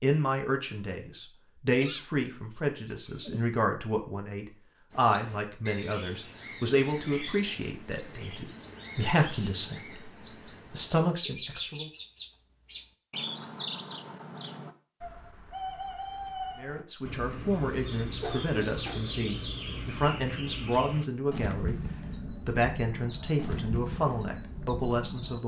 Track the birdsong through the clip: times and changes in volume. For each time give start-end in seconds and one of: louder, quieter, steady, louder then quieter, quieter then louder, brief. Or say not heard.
4.9-25.4 steady.